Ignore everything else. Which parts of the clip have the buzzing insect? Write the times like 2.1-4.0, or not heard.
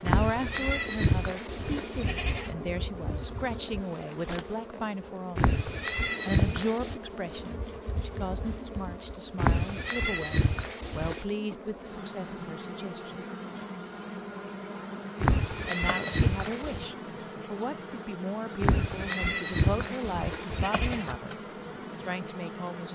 0.0-22.9.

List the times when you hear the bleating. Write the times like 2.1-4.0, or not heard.
0.1-2.5, 5.3-7.0, 9.3-11.2, 15.2-16.9, 18.6-21.1.